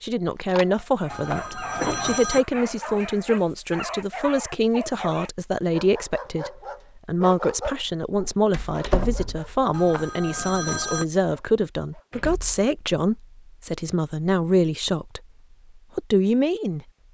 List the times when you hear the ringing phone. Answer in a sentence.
You can hear the ringing phone from 1.1 to 2.5 s and from 9.7 to 11.1 s.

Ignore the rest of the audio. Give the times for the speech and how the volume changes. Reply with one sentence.
The speech can be heard from 0.0 to 15.2 s, at a steady volume; and briefly from 15.9 to 16.8 s.